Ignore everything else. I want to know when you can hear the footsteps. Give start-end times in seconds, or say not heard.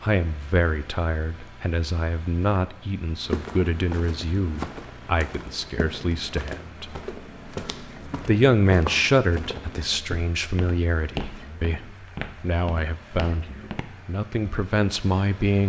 3.2-13.8.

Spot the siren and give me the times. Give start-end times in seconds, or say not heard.
not heard.